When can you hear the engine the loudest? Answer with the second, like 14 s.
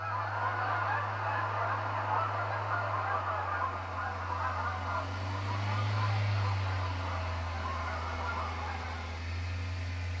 6 s.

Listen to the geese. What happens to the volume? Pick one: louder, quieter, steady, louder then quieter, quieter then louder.
quieter.